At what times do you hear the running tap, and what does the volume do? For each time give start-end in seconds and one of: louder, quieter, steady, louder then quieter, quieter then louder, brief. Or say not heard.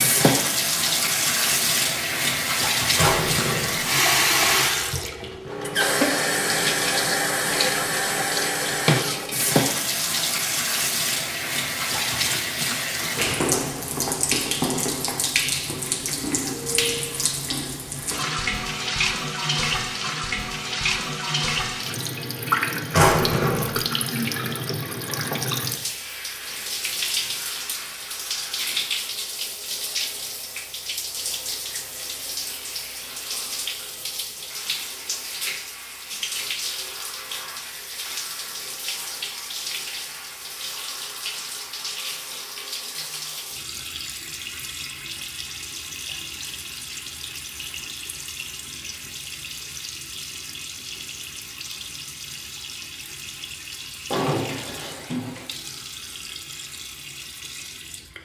0.0-58.2 quieter.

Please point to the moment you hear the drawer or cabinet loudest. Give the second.
23 s.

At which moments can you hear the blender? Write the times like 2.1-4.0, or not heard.
not heard.